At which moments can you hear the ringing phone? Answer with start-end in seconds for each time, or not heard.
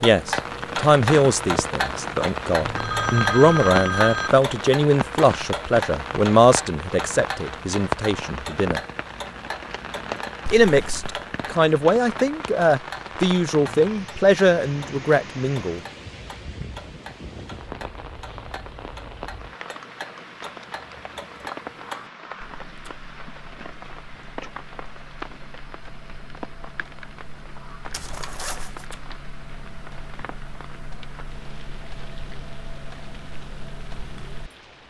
2.6-4.3.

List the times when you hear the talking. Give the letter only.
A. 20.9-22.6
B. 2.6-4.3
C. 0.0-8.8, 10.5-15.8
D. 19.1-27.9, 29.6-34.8
C.